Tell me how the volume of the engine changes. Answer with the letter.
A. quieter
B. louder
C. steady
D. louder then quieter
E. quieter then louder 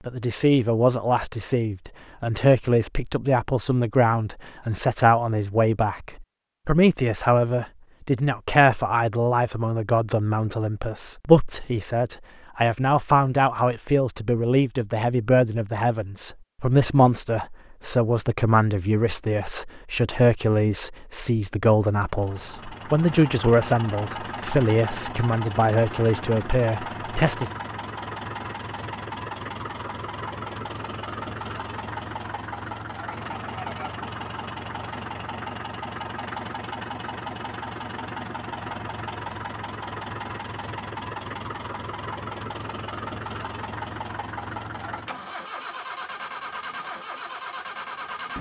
C.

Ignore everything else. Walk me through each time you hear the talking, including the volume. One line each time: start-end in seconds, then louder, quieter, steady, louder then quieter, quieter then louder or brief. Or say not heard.
0.1-27.5 steady.